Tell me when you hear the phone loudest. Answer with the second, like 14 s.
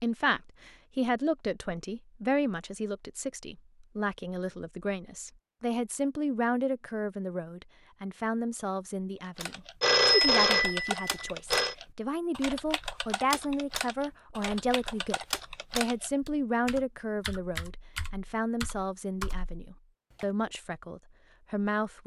10 s.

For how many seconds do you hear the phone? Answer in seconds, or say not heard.
2 s.